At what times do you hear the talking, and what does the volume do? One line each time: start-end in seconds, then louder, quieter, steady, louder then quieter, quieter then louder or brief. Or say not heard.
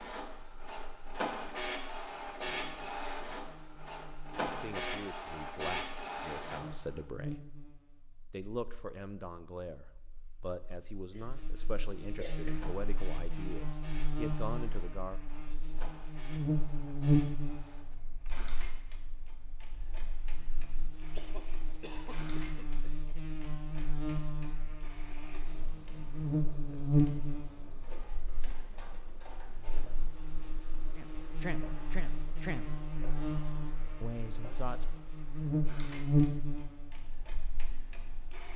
4.5-7.4 brief
8.3-15.2 steady
30.9-32.6 brief
34.0-34.9 brief.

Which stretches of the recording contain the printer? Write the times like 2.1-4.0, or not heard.
0.0-7.0, 12.5-38.5.